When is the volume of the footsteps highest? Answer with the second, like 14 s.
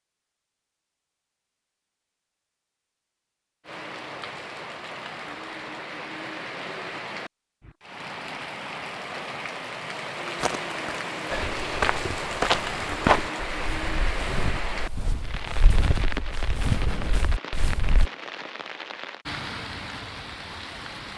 13 s.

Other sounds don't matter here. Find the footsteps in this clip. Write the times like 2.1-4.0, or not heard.
10.4-18.1.